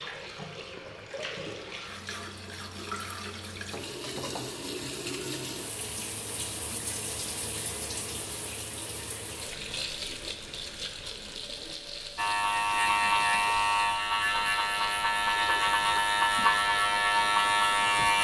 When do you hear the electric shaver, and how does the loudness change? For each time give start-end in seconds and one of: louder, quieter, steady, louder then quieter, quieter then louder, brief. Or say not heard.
12.2-18.2 steady.